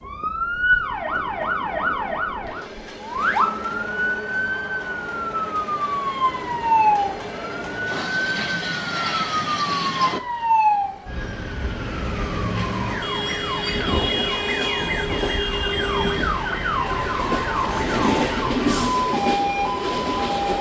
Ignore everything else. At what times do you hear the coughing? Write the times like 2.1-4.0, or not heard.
not heard.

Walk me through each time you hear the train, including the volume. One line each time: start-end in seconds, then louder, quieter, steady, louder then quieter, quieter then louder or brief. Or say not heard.
0.0-20.5 louder.